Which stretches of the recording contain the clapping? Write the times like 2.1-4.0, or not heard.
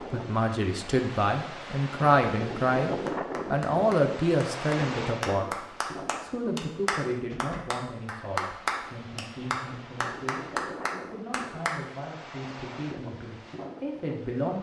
3.0-11.8.